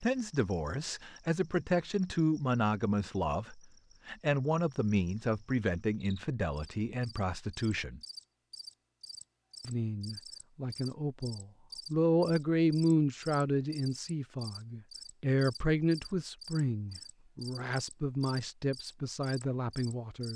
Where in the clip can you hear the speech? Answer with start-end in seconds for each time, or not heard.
0.0-8.0, 9.6-20.3.